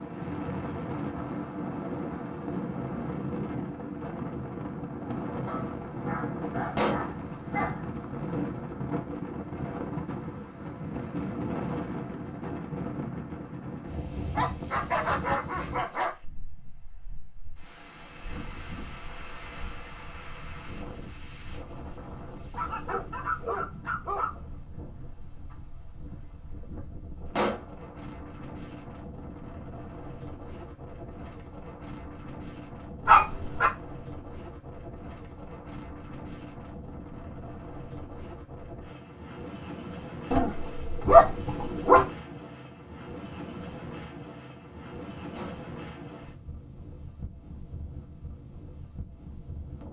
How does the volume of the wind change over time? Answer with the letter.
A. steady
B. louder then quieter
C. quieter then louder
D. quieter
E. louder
D.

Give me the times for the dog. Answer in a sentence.
The dog can be heard from 5.5 to 7.8 s, from 14.3 to 16.1 s, from 22.5 to 24.6 s, from 33.0 to 33.7 s and from 40.3 to 42.0 s.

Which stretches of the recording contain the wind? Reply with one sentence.
You can hear the wind from 0.0 to 49.8 s.